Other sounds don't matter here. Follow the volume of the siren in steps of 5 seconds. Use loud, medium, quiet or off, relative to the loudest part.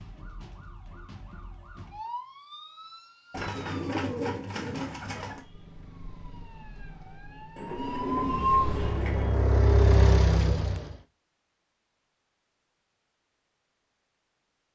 quiet, loud, off.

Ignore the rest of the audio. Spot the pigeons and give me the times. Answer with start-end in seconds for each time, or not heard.
3.3-5.4, 7.5-9.5.